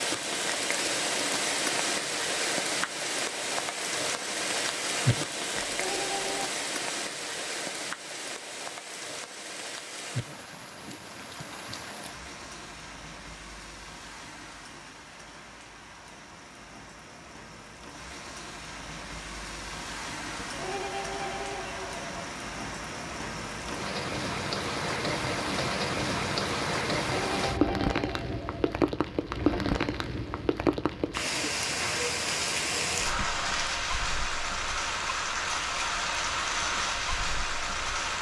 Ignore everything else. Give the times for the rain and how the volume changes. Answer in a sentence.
The rain can be heard from 0.0 to 38.1 s, getting quieter then louder.